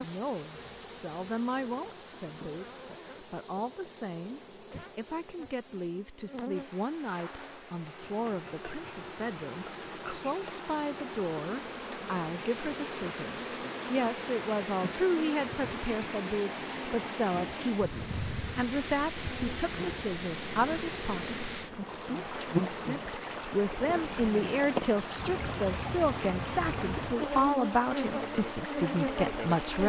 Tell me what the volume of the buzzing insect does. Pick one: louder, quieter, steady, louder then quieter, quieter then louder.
louder.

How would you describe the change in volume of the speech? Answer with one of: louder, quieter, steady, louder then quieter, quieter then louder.
louder.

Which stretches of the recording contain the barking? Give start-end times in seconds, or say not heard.
not heard.